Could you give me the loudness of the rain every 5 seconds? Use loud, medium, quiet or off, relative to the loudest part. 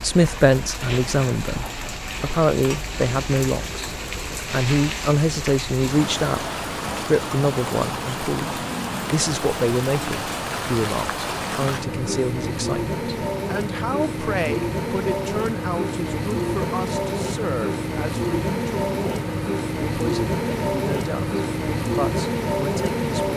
medium, medium, loud, loud, loud.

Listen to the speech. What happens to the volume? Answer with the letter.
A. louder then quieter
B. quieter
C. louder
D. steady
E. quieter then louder
B.